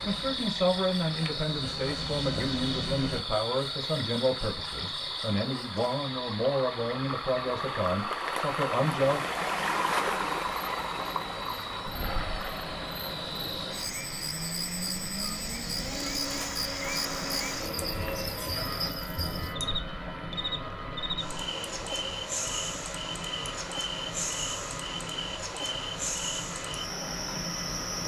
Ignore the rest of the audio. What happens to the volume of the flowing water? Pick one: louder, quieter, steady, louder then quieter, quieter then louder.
louder then quieter.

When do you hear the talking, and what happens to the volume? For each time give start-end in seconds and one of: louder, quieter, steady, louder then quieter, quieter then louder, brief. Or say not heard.
0.1-9.2 steady.